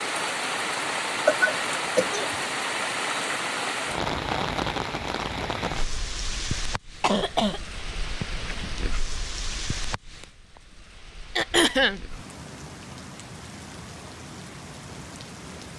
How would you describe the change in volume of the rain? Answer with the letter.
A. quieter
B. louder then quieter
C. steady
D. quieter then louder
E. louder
A.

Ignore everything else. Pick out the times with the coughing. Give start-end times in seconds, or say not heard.
1.1-2.4, 7.0-7.6, 11.3-12.0.